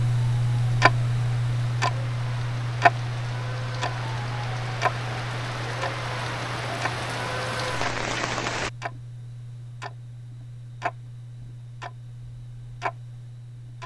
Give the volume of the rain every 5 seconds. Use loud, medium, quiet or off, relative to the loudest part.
medium, loud, off.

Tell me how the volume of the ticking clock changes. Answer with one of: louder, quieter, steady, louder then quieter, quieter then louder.
quieter.